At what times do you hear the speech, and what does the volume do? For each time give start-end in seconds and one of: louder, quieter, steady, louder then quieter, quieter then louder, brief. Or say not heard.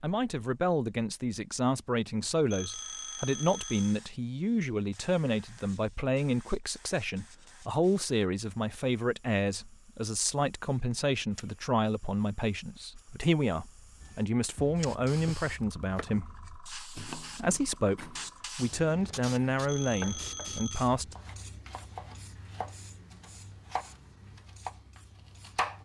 0.0-21.1 steady.